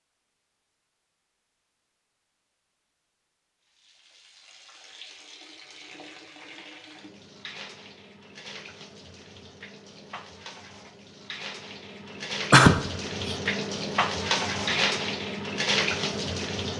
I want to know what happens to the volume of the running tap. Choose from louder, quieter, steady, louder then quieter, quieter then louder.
louder.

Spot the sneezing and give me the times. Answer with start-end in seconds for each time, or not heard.
12.5-13.3.